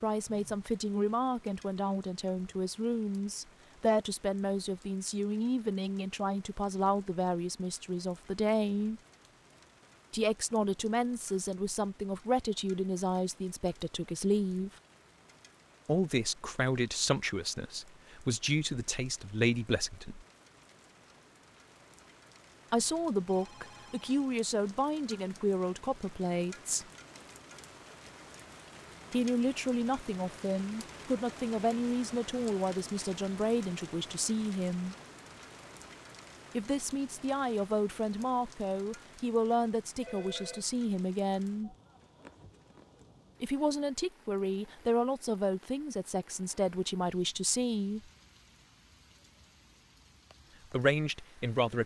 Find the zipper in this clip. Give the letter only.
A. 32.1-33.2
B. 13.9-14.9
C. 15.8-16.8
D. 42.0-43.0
D.